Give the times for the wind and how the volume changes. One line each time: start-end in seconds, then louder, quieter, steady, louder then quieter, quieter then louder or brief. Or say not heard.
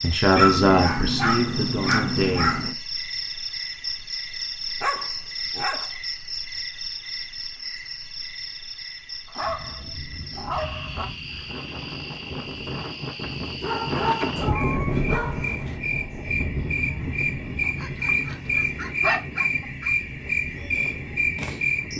9.4-21.9 louder then quieter.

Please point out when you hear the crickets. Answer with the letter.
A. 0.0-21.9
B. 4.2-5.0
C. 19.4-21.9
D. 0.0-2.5
A.